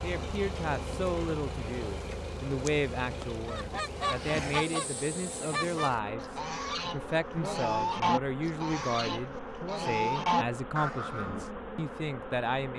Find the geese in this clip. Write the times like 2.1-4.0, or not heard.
3.5-11.4.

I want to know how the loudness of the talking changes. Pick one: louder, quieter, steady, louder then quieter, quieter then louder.
steady.